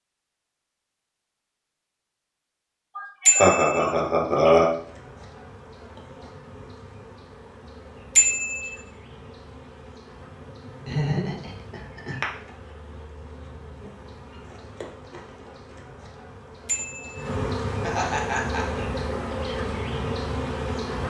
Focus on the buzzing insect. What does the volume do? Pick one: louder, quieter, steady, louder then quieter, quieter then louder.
louder.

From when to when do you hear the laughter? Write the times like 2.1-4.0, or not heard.
3.0-4.7, 10.8-12.2, 17.8-18.9.